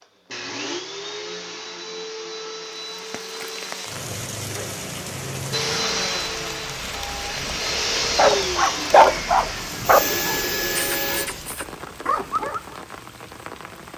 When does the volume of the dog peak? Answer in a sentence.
The volume of the dog peaks at 9 seconds.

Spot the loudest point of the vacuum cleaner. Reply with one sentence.
The volume of the vacuum cleaner peaks at 8 seconds.